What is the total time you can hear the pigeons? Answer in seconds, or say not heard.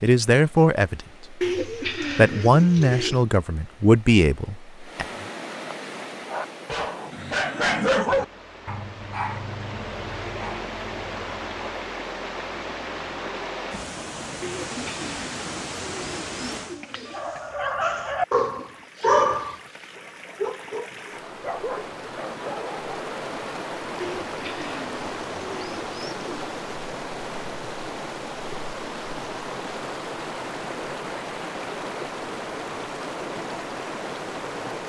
7 s.